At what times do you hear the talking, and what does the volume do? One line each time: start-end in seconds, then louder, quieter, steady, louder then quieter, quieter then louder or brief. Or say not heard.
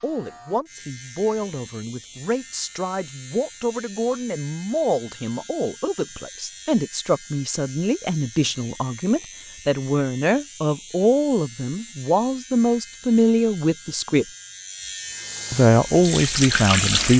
0.0-14.2 louder
15.5-17.1 brief.